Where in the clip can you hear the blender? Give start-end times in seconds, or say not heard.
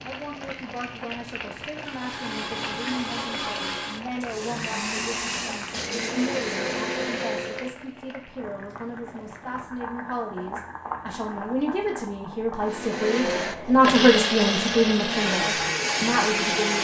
1.8-7.7, 12.6-16.7.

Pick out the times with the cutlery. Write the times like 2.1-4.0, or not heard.
not heard.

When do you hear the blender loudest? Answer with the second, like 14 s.
14 s.